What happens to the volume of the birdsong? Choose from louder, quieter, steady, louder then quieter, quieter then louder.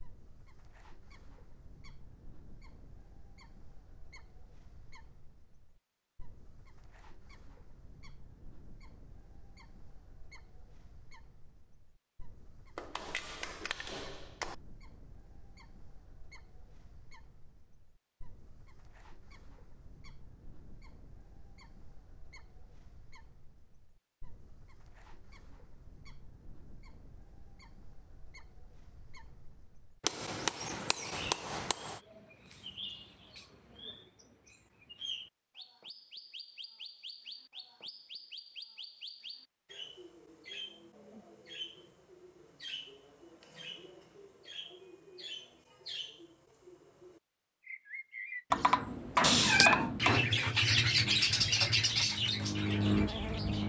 louder.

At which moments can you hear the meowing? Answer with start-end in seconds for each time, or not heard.
49.2-49.9.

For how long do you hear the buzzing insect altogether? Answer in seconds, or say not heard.
3 s.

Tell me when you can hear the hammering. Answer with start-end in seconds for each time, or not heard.
12.8-14.6, 30.0-32.0, 48.5-50.3.